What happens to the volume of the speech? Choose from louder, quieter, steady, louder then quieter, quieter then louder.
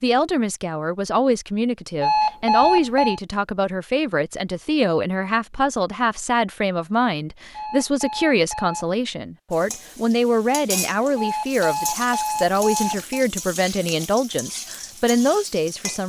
steady.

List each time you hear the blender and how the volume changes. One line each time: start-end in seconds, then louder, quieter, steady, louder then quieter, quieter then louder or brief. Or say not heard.
not heard.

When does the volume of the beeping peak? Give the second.
3 s.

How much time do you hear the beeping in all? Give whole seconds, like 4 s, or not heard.
5 s.